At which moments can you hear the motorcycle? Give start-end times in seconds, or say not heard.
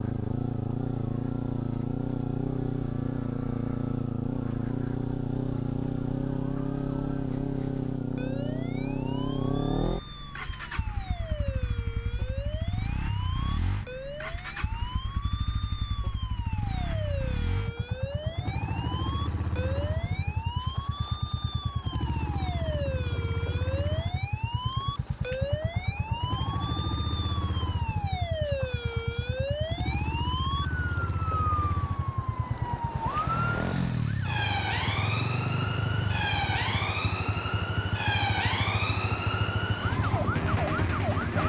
0.0-41.4.